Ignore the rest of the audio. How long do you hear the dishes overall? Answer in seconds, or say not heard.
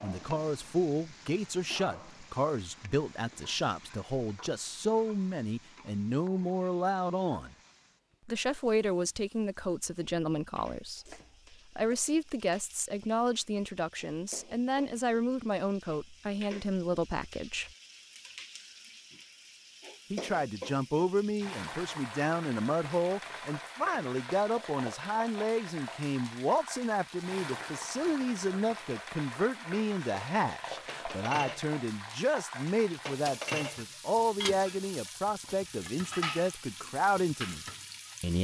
6 s.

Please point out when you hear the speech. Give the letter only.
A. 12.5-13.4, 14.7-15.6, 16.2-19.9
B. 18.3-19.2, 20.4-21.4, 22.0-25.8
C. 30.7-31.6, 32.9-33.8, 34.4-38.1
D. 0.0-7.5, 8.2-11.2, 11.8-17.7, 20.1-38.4
D.